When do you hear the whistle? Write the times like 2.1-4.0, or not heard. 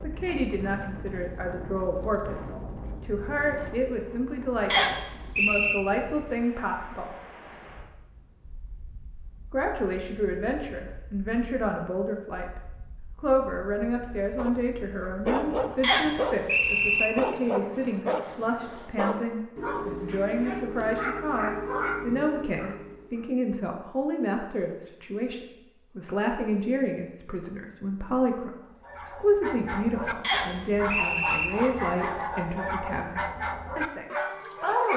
4.7-5.8, 15.8-17.1, 30.2-31.5.